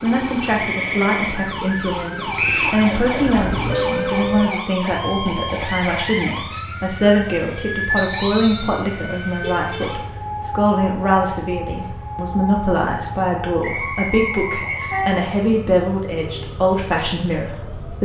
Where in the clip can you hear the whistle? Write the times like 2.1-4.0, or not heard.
2.4-2.8, 8.0-8.8, 13.6-15.0.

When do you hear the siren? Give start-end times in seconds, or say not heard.
0.0-18.0.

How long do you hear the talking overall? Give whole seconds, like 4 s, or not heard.
18 s.